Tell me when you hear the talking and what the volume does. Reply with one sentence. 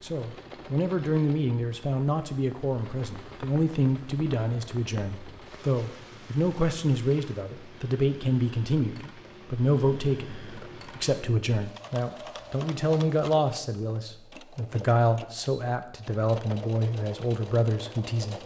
You can hear the talking from 0.0 to 18.4 s, at a steady volume.